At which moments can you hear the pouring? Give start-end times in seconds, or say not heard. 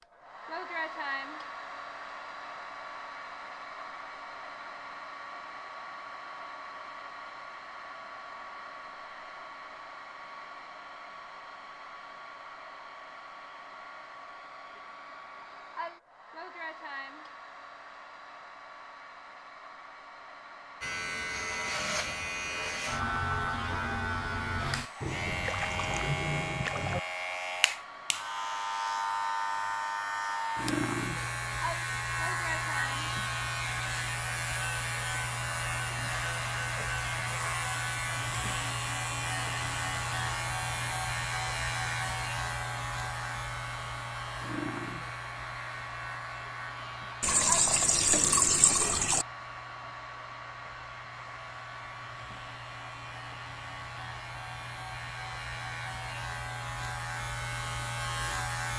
25.0-27.0, 47.2-49.2.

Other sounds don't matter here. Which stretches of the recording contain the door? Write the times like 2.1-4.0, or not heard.
not heard.